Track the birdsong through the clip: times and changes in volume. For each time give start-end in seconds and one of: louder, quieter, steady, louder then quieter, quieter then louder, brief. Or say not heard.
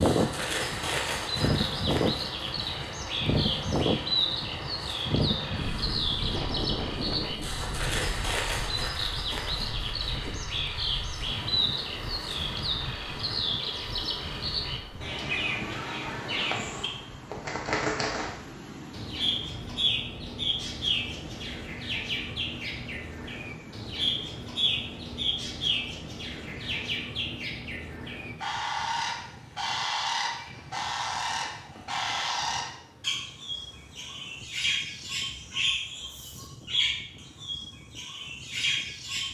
0.0-39.2 steady.